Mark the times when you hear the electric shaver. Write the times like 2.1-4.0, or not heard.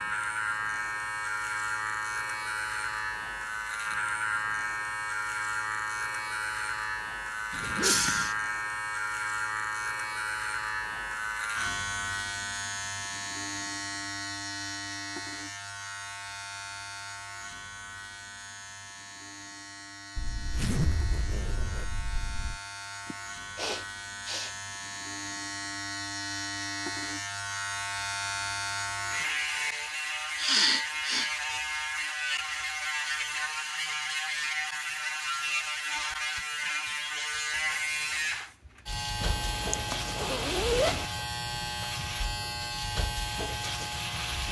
0.0-44.4.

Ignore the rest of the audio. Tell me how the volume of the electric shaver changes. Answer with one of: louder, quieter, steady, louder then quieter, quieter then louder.
quieter then louder.